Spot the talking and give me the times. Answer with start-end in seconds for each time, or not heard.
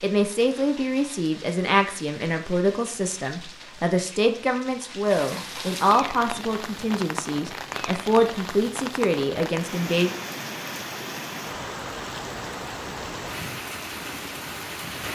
0.0-10.1.